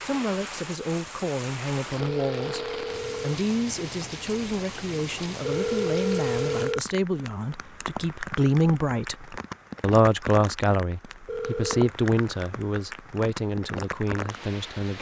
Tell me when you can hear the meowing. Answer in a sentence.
The meowing can't be heard in this clip.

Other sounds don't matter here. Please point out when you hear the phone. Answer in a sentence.
You can hear the phone from 2.0 to 3.5 s, from 5.4 to 6.8 s and from 11.2 to 11.9 s.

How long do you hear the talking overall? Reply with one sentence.
The talking can be heard for 15 seconds in total.